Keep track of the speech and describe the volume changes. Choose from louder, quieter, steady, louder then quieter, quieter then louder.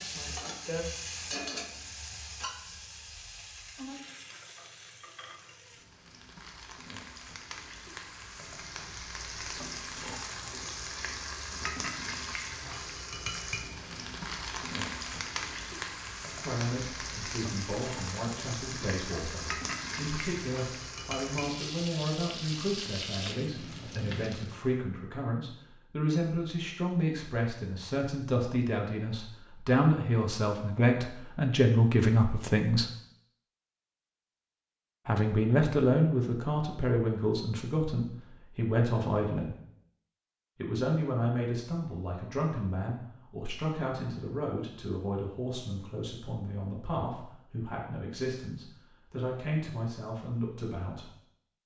louder then quieter.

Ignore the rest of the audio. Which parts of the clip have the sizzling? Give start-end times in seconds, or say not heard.
0.0-24.6.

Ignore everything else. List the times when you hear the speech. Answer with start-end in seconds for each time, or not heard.
16.4-32.9, 35.0-39.5, 40.5-51.1.